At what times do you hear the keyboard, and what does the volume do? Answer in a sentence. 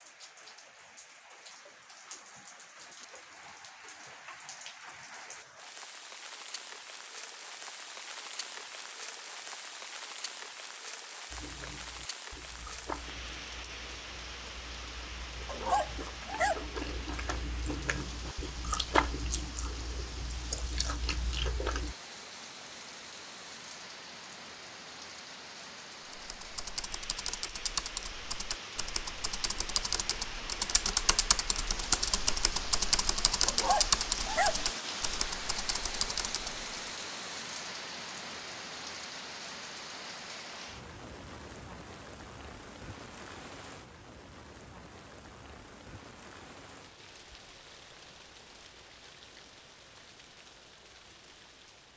You can hear the keyboard from 26.1 to 37.0 s, getting louder then quieter.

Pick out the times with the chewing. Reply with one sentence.
You can hear the chewing from 11.3 to 21.9 s.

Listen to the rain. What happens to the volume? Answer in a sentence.
The volume of the rain goes up, then down.